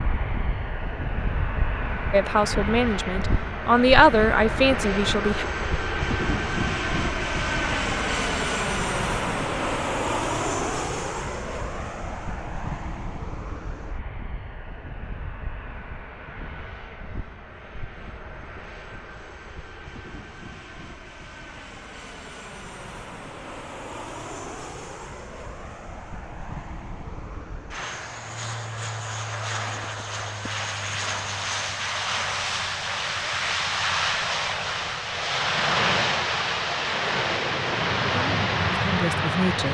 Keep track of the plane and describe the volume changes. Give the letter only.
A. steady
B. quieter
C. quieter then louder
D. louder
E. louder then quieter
C.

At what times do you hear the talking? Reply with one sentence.
You can hear the talking from 2.1 to 5.5 s and from 38.1 to 39.6 s.